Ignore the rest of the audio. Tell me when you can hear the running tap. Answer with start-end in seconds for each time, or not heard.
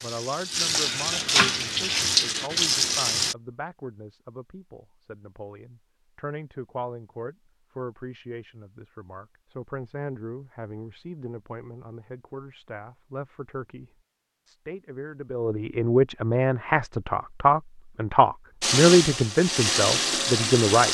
0.0-3.4, 18.6-20.8.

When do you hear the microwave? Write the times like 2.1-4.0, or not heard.
not heard.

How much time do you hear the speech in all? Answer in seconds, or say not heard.
21 s.